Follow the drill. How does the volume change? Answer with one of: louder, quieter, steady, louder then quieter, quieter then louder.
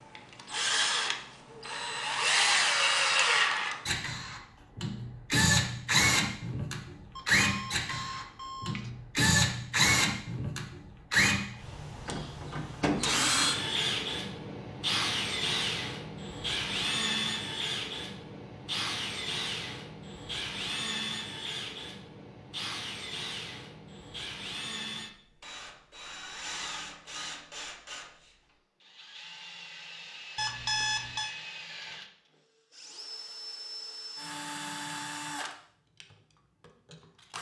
quieter.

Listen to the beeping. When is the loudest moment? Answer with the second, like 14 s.
31 s.